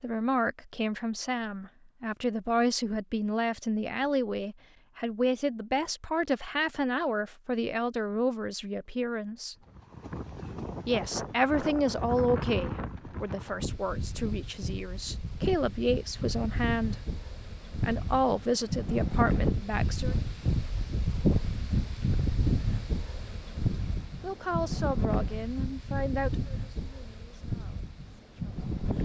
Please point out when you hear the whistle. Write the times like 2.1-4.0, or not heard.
not heard.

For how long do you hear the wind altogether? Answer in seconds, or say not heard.
19 s.